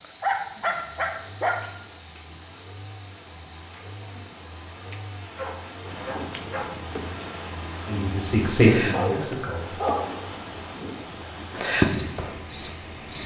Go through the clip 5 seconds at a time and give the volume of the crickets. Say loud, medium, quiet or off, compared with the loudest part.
loud, medium, loud.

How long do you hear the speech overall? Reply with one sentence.
The speech can be heard for 2 seconds in total.